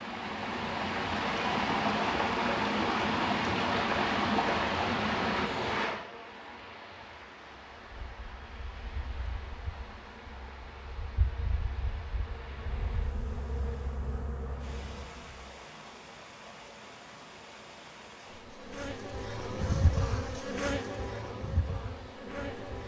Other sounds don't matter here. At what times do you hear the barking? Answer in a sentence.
You can't hear the barking here.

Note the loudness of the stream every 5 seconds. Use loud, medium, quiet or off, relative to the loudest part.
loud, medium, quiet, quiet, quiet.